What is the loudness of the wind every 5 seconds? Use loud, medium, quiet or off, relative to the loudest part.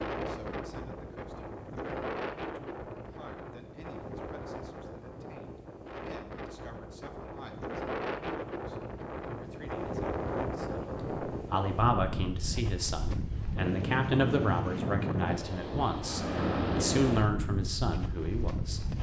medium, medium, loud, loud.